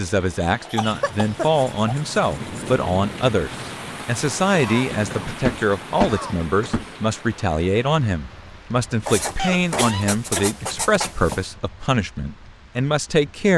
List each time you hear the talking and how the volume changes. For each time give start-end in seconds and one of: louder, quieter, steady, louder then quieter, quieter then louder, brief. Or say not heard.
0.0-13.5 steady.